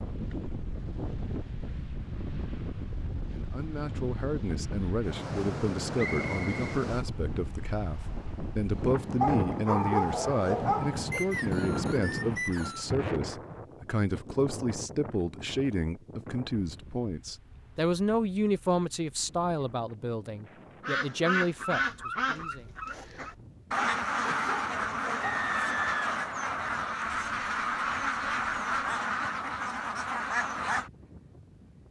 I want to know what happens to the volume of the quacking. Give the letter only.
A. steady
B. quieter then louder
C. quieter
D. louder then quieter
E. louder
A.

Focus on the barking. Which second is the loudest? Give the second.
10 s.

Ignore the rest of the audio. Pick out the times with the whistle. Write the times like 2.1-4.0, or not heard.
6.0-6.6, 11.1-12.9, 25.2-26.9.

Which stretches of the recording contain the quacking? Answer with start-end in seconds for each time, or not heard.
20.8-30.9.